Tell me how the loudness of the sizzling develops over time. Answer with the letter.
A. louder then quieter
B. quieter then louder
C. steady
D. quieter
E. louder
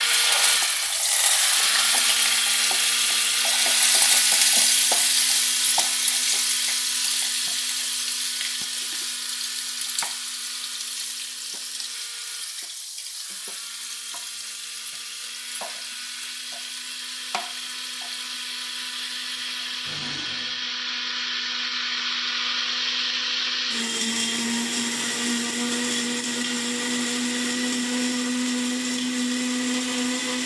D.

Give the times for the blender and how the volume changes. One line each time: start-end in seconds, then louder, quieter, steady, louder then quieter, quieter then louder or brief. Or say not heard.
0.0-30.4 quieter then louder.